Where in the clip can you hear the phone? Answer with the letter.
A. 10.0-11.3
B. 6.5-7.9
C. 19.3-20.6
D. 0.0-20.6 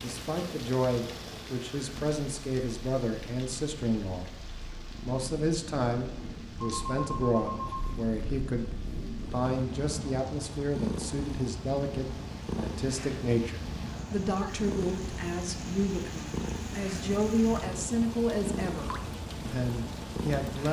B.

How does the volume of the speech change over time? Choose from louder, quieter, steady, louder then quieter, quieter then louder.
steady.